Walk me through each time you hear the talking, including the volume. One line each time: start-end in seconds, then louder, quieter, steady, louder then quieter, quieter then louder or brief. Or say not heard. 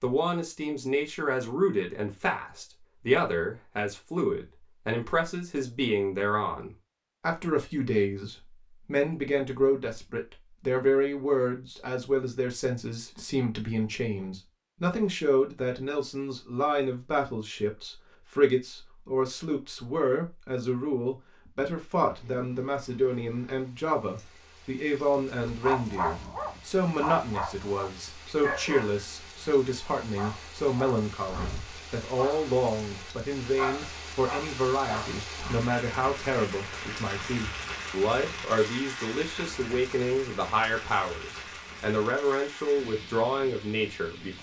0.0-44.3 steady.